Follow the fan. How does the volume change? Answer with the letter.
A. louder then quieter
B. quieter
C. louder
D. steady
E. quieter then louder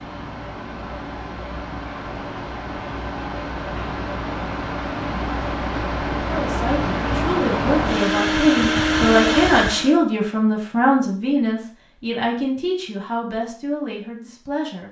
C.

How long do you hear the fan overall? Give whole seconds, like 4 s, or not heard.
10 s.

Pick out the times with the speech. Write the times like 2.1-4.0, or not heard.
6.2-14.8.